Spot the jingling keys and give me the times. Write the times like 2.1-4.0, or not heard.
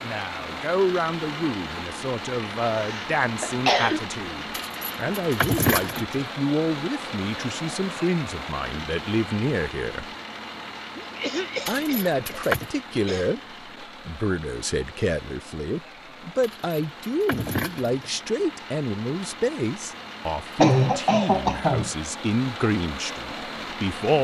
4.5-6.2, 11.7-12.7, 16.4-18.1.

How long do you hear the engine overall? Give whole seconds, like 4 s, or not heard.
24 s.